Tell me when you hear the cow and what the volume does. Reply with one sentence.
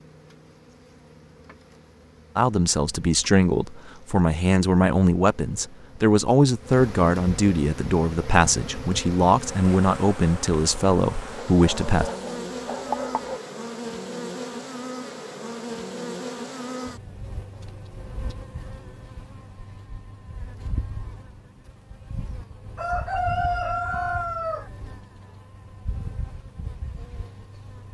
You can't hear the cow here.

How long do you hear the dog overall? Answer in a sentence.
You can hear the dog for 2 seconds altogether.